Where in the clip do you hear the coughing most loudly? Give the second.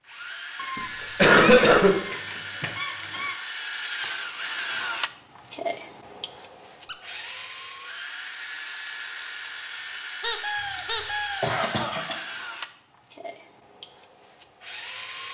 1 s.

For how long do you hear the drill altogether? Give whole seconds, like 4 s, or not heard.
15 s.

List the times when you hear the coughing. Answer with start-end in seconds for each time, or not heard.
0.8-1.9, 10.8-12.2.